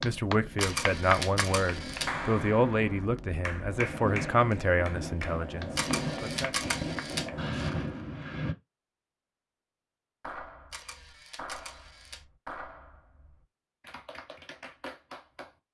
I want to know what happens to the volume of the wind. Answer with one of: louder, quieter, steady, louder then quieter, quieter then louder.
louder.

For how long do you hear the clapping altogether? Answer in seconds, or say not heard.
13 s.